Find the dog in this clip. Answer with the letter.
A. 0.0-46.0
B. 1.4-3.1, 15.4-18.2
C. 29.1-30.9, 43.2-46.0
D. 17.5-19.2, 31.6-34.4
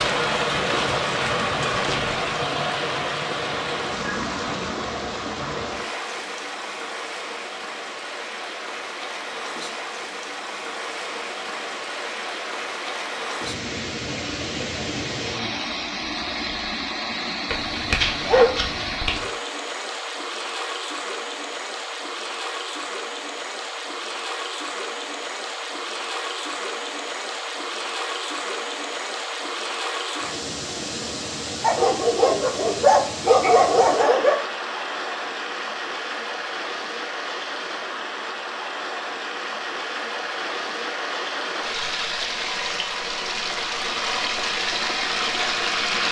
D.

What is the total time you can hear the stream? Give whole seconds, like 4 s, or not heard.
46 s.